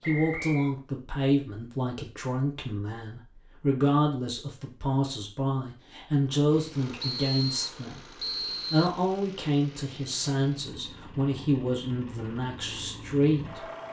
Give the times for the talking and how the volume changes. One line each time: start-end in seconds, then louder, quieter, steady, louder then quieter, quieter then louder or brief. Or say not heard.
0.0-13.7 steady.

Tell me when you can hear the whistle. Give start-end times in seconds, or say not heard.
0.0-0.8, 7.0-9.0.